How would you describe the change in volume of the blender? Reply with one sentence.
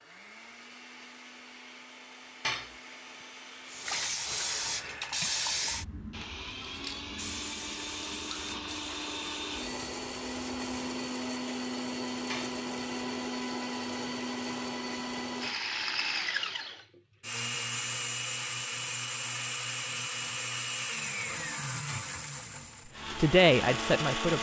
The loudness of the blender goes up.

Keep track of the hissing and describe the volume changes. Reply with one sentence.
The volume of the hissing goes down.